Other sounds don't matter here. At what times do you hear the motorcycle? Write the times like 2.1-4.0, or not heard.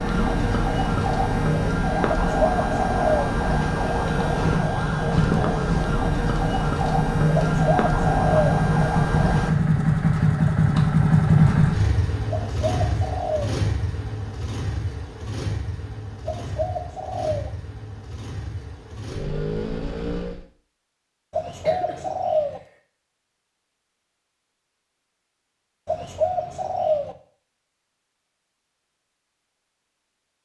0.0-20.4.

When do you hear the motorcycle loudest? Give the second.
11 s.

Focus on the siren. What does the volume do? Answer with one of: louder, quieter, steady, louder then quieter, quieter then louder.
steady.